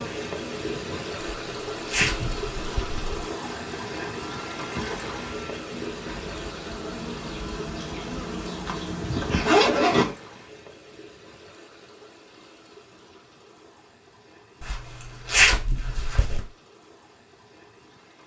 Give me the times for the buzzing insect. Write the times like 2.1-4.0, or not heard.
0.0-9.5.